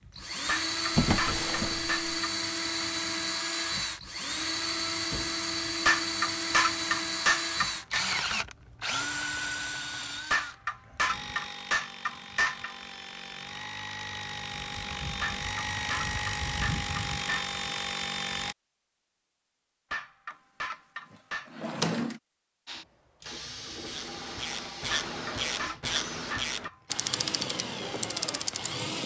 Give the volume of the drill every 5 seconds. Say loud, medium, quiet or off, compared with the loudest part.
loud, loud, medium, loud, medium, medium.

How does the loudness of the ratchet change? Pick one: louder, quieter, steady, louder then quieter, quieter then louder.
steady.